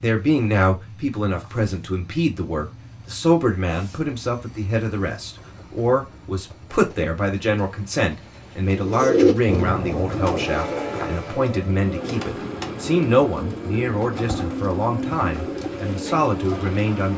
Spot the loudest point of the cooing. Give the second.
9 s.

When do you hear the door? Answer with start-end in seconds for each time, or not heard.
not heard.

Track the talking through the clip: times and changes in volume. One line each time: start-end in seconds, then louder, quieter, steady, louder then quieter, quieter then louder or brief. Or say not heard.
0.0-17.1 steady.